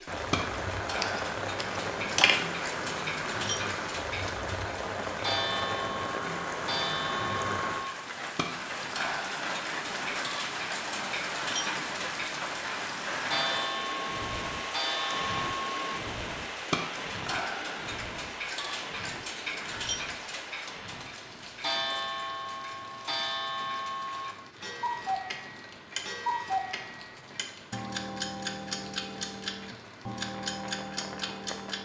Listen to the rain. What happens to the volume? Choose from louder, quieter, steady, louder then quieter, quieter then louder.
quieter.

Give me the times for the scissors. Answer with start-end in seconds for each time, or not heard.
1.0-2.5.